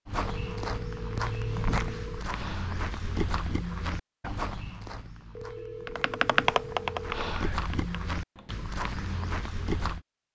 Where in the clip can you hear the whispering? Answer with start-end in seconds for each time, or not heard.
2.3-2.9, 7.1-7.7.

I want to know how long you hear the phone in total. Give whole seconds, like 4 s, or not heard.
4 s.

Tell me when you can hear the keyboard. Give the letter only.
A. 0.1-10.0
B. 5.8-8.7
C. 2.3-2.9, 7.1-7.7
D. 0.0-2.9
B.